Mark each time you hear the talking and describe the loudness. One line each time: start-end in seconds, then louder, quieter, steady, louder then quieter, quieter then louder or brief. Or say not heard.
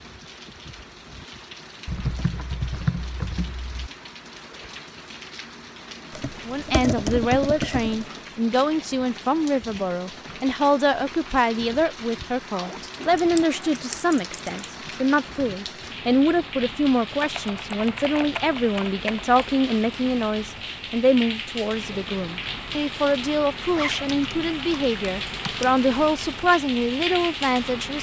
6.5-27.9 steady.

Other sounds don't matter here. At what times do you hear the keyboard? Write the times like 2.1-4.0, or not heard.
1.9-3.9, 6.1-8.1, 13.0-14.5, 17.2-19.4, 24.1-25.8.